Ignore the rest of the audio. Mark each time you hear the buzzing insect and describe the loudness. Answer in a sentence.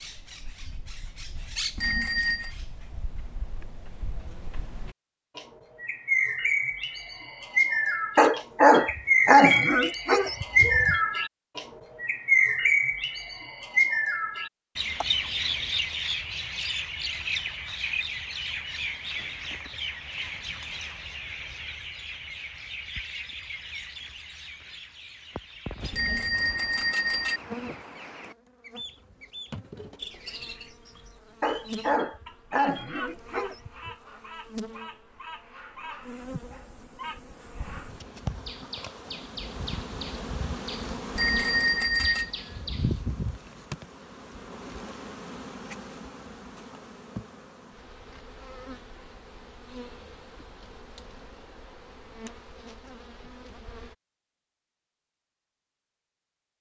You can hear the buzzing insect from 25.8 to 54.0 s, getting louder then quieter.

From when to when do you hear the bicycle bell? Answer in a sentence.
The bicycle bell can be heard from 1.8 to 2.5 s, from 25.9 to 27.4 s and from 41.1 to 42.3 s.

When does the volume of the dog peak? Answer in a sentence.
The volume of the dog peaks at 9 seconds.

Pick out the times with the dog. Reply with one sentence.
You can hear the dog from 8.2 to 11.0 s and from 31.4 to 34.0 s.